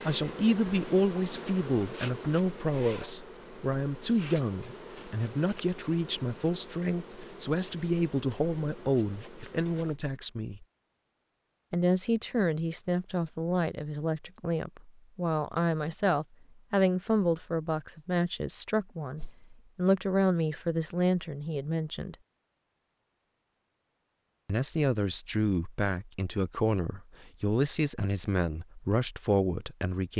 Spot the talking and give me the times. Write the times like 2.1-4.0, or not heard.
0.0-10.7, 11.7-22.1, 24.4-30.1.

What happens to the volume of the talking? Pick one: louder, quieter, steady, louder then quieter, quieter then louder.
steady.